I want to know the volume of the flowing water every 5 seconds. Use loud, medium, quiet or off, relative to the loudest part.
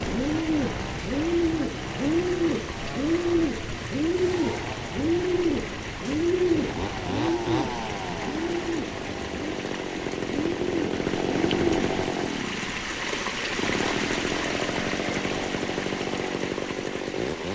medium, medium, loud, loud.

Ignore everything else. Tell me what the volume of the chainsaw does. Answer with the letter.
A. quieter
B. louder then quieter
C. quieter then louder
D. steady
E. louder
E.